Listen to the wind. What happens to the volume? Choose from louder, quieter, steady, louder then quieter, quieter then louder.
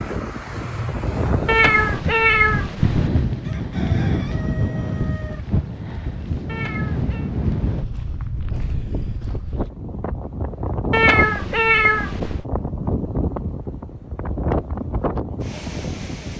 steady.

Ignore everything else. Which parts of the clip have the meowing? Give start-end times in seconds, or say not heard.
1.4-3.1, 6.5-7.3, 10.9-12.4.